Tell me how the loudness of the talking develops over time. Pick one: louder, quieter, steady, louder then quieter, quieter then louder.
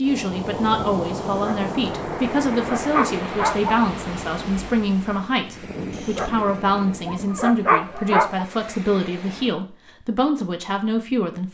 steady.